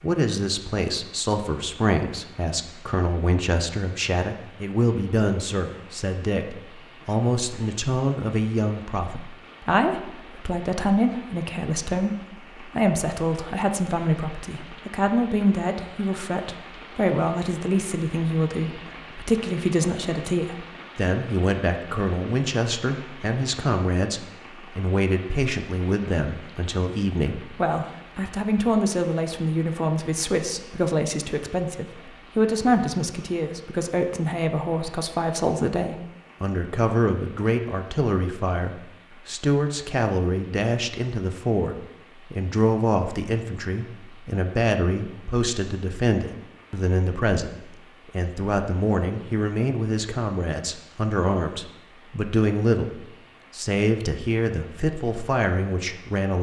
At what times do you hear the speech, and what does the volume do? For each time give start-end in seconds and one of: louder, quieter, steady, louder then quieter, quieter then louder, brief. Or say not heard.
0.0-56.3 steady.